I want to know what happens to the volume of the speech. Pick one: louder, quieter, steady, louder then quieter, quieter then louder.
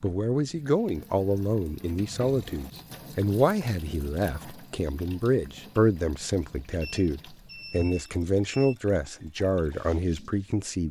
steady.